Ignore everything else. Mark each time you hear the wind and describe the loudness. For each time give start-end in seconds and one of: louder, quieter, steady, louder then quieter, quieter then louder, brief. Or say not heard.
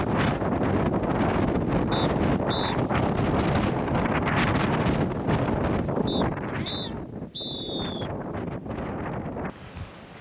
0.0-10.1 quieter.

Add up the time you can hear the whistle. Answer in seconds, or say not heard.
3 s.